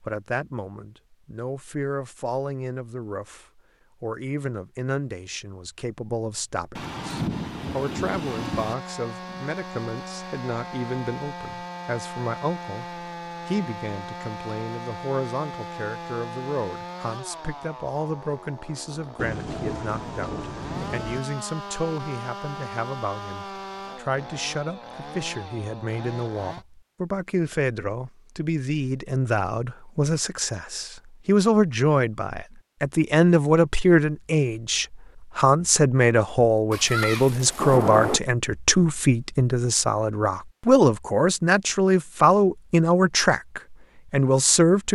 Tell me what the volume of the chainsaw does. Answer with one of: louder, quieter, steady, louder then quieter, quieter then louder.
steady.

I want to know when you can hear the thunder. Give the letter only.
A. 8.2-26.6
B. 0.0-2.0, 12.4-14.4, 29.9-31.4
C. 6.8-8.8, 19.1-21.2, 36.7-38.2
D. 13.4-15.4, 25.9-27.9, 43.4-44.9
C.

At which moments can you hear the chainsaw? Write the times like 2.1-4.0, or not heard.
8.2-26.6.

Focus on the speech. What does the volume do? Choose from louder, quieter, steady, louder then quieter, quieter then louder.
louder.